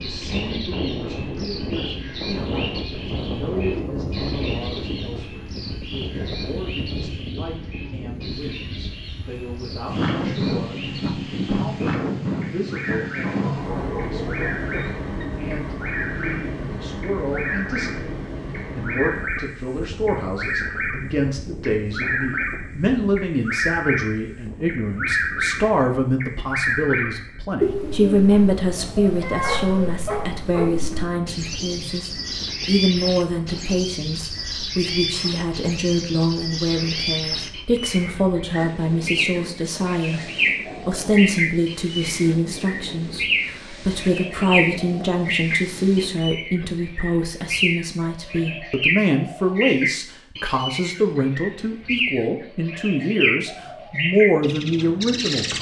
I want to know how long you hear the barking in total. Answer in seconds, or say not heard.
4 s.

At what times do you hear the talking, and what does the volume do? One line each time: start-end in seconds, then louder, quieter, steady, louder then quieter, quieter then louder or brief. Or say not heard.
0.0-55.5 louder.